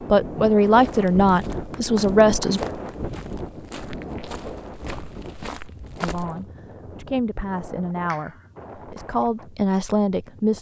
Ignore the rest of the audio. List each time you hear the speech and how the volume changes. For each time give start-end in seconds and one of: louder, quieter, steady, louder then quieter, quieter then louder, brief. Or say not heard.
0.1-2.6 brief
6.0-10.5 louder.